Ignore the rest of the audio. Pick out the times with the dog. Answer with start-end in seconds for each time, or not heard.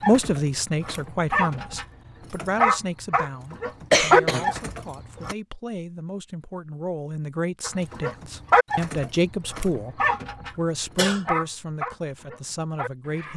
0.0-5.3, 7.7-13.3.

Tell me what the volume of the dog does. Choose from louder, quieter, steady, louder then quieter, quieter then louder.
louder then quieter.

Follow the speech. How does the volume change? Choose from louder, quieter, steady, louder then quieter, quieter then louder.
quieter then louder.